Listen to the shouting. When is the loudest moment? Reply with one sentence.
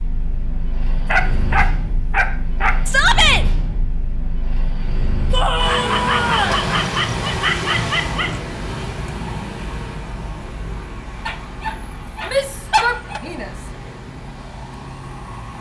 The volume of the shouting peaks at 3 seconds.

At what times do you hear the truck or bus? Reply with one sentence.
The truck or bus can be heard from 0.0 to 15.5 s.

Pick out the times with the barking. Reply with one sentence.
You can hear the barking from 1.1 to 2.8 s, from 5.5 to 8.4 s and from 11.2 to 13.2 s.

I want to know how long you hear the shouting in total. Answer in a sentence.
You can hear the shouting for 3 seconds altogether.